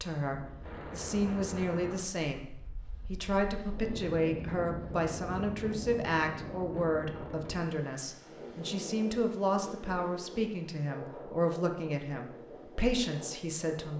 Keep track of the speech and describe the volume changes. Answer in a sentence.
The loudness of the speech stays about the same.